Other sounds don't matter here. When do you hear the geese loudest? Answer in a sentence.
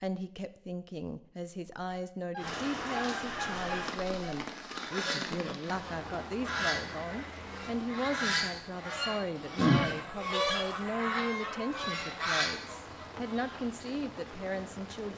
The volume of the geese peaks at 10 seconds.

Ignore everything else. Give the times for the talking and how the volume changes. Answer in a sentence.
The talking can be heard from 0.0 to 15.1 s, at a steady volume.